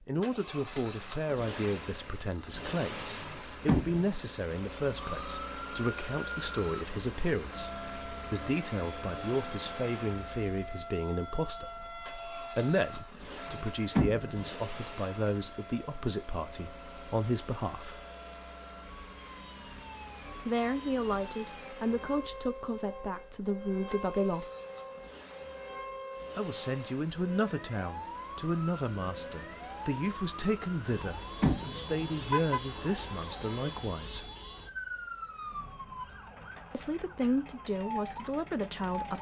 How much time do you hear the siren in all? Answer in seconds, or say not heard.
34 s.